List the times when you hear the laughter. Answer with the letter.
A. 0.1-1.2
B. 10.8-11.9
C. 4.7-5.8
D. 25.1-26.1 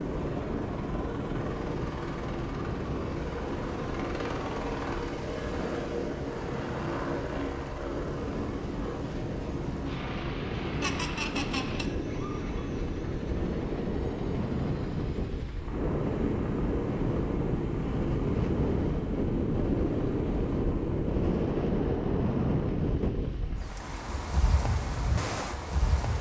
B.